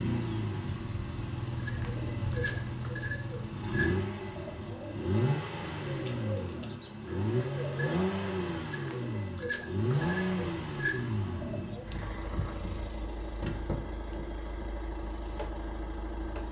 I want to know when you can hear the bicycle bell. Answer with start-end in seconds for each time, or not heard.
not heard.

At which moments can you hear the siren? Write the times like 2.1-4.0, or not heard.
not heard.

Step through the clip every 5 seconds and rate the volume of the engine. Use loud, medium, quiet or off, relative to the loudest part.
loud, loud, loud, medium.